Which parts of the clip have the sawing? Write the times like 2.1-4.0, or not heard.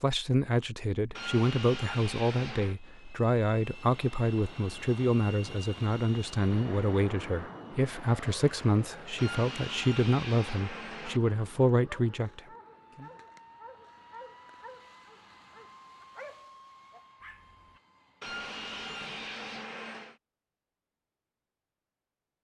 1.1-2.8, 9.2-11.2, 18.2-20.1.